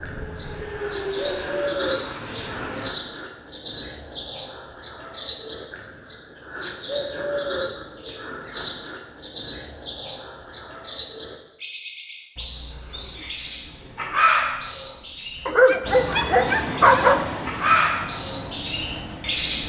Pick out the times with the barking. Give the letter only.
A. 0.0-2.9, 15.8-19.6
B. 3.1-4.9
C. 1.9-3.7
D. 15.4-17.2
D.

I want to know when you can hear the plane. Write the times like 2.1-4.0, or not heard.
0.0-2.9, 15.8-19.6.